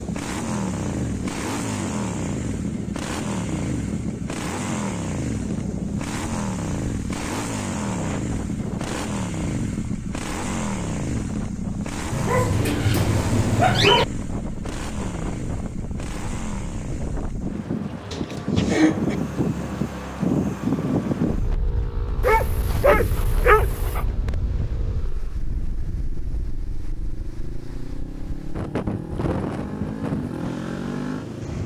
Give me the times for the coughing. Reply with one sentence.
The coughing can be heard from 18.1 to 19.1 s.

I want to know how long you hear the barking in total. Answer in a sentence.
You can hear the barking for 4 seconds altogether.